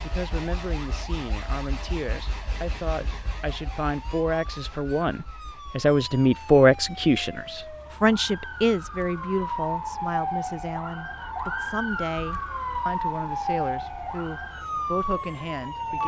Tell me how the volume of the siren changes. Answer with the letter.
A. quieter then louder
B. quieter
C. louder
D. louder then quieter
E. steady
C.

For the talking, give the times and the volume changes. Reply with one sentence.
You can hear the talking from 0.0 to 16.0 s, getting louder then quieter.